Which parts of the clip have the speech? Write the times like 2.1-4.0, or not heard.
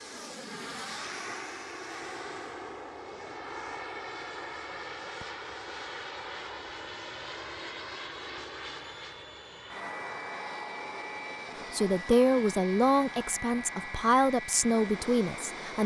11.7-15.8.